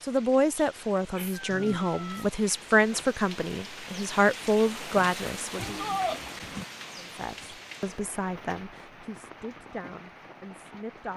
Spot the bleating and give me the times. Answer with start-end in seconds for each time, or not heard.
5.5-6.7.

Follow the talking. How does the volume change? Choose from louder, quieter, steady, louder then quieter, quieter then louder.
quieter.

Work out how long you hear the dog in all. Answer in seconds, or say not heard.
not heard.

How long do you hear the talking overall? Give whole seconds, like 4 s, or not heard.
10 s.